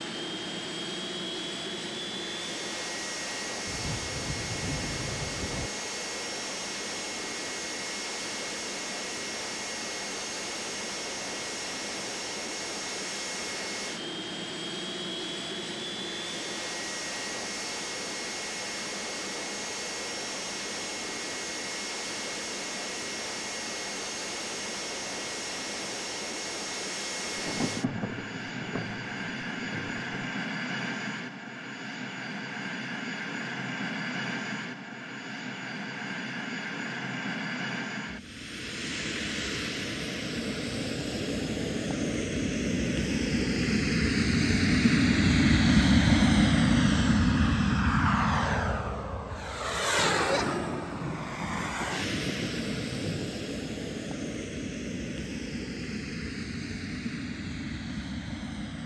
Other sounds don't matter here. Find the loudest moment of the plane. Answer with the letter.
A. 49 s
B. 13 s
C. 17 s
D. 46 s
D.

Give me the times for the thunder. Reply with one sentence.
The thunder can be heard from 3.6 to 5.7 s, from 27.4 to 30.0 s and from 50.0 to 53.4 s.